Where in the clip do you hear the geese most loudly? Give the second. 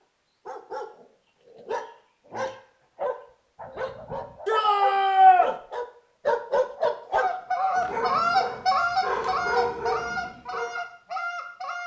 8 s.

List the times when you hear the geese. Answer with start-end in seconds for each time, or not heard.
7.1-11.8.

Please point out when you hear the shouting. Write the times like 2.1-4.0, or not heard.
4.5-5.5.